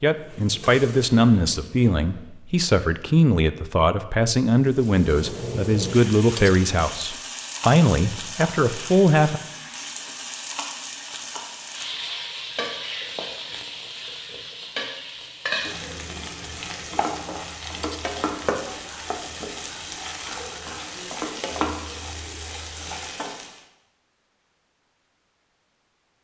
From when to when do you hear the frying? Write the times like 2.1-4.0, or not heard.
0.0-2.3, 4.6-23.6.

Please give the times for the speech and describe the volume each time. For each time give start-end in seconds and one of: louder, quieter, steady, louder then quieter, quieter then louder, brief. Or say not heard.
0.0-9.4 steady.